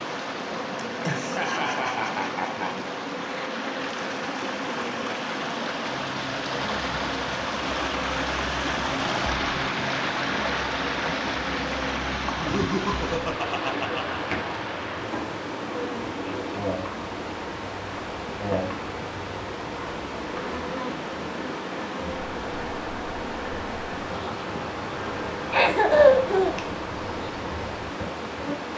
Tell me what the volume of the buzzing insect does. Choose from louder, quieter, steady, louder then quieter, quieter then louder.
steady.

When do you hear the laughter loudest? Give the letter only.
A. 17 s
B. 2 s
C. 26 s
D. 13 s
C.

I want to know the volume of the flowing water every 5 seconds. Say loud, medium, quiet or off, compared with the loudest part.
medium, loud, loud, medium, medium, medium.